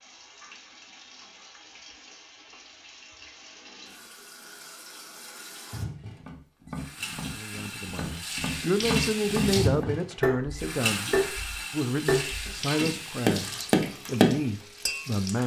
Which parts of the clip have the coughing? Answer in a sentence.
The coughing can't be heard in this clip.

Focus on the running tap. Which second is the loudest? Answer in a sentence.
The volume of the running tap peaks at 9 seconds.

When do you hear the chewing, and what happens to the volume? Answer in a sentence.
You can't hear the chewing here.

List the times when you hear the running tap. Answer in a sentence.
The running tap can be heard from 0.0 to 15.4 s.